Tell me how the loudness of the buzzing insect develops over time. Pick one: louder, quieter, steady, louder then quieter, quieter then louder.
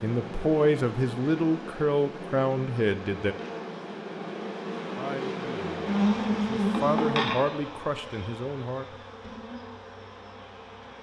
louder then quieter.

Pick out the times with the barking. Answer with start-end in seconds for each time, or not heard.
not heard.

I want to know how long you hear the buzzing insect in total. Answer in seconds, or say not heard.
11 s.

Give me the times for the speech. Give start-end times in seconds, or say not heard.
0.0-3.4, 5.0-8.9.